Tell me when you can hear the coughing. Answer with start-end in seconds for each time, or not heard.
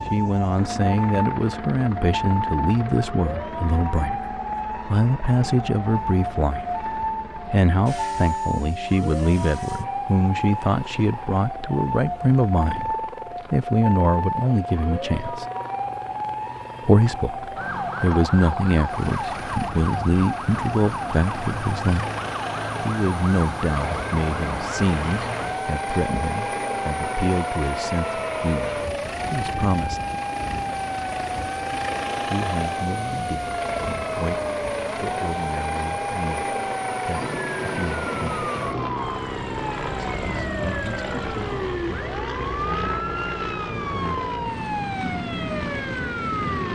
not heard.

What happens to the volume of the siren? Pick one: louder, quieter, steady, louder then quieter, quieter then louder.
steady.